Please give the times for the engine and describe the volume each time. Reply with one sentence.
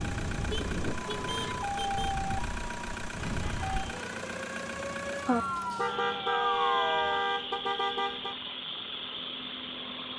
You can hear the engine from 0.0 to 10.1 s, at a steady volume.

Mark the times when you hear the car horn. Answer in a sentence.
The car horn can be heard from 0.5 to 2.1 s and from 5.8 to 8.3 s.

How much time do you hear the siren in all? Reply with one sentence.
The siren can be heard for 7 seconds in total.